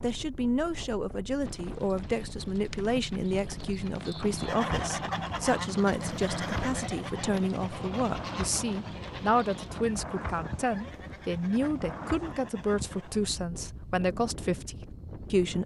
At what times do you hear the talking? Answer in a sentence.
You can hear the talking from 0.0 to 15.6 s.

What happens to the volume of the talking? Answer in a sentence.
The volume of the talking stays about the same.